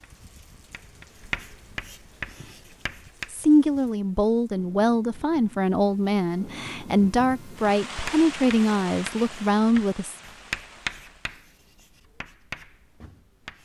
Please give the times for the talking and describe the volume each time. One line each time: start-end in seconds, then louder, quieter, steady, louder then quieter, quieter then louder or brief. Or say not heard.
3.3-10.2 steady.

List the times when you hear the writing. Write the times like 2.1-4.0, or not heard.
0.0-3.3, 7.9-13.6.